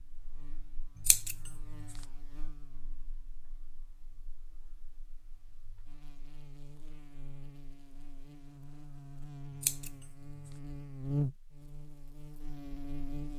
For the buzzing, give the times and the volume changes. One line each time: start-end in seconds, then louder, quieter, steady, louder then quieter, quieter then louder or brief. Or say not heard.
0.0-13.3 quieter then louder.